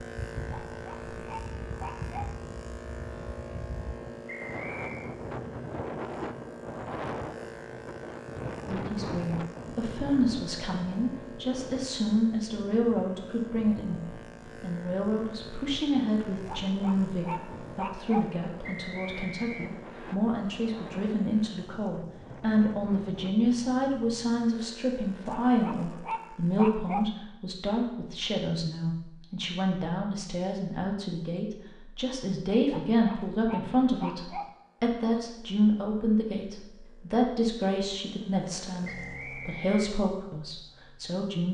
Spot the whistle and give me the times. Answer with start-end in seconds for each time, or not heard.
4.2-5.2, 18.6-20.1, 38.8-40.0.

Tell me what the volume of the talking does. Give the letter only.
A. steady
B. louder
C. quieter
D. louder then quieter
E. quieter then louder
A.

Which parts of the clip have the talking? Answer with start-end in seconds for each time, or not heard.
8.7-41.4.